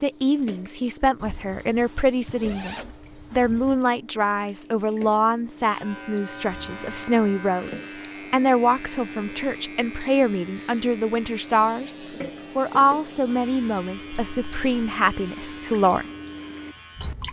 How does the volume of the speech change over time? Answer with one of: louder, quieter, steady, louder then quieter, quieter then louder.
steady.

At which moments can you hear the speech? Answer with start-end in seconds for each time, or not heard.
0.0-11.9, 12.6-16.1.